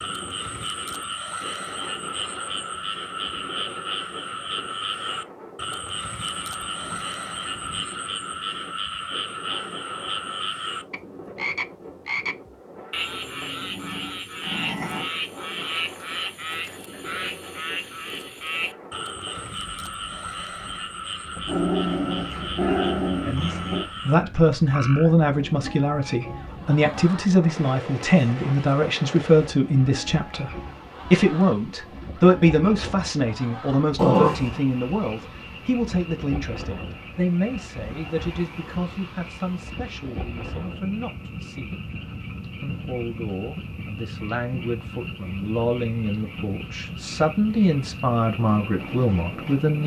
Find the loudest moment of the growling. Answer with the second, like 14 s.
34 s.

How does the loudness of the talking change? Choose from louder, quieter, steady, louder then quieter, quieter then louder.
quieter then louder.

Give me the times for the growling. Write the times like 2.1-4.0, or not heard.
13.6-15.1, 21.4-23.9, 34.0-34.6.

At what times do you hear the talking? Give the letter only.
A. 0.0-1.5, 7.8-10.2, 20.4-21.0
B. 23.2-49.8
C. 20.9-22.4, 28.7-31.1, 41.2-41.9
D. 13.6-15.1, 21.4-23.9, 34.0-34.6
B.